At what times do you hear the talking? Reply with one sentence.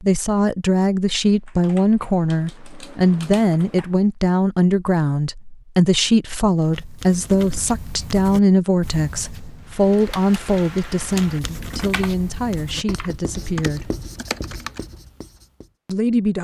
You can hear the talking from 0.0 to 13.9 s and from 15.8 to 16.3 s.